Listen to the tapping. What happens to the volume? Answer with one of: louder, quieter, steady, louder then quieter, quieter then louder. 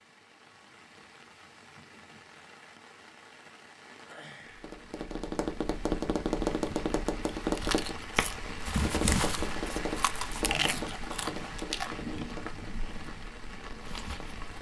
quieter.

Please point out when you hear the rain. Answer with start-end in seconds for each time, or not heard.
0.0-14.5.